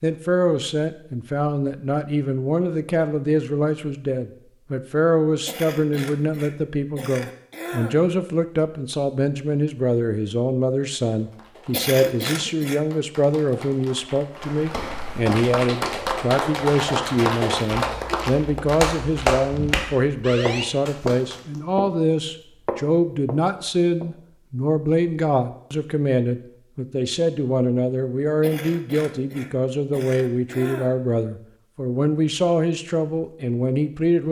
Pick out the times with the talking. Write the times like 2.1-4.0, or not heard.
0.0-34.2.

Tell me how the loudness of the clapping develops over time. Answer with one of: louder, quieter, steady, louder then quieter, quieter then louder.
louder.